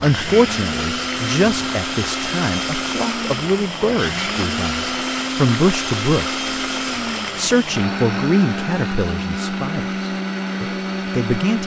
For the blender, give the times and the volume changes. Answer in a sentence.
You can hear the blender from 0.0 to 11.6 s, at a steady volume.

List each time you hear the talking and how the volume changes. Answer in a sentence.
You can hear the talking from 0.0 to 6.4 s, getting quieter then louder; and from 7.3 to 11.6 s, getting quieter then louder.